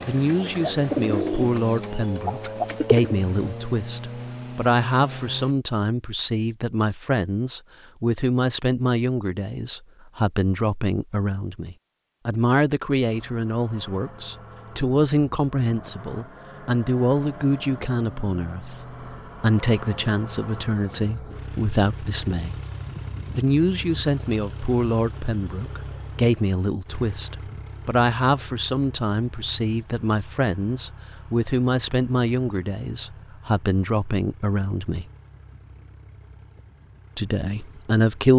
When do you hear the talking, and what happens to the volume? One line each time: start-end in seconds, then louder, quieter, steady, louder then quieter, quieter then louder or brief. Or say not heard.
0.1-22.6 steady
23.3-35.0 steady
37.1-38.3 brief.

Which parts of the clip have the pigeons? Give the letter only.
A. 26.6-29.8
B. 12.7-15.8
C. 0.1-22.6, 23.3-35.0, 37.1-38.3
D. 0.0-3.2
D.